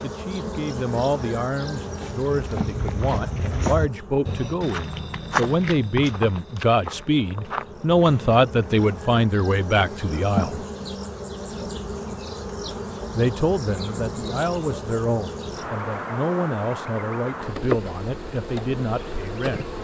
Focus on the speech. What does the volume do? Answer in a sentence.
The volume of the speech goes up, then down.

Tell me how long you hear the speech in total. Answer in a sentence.
You can hear the speech for 17 seconds altogether.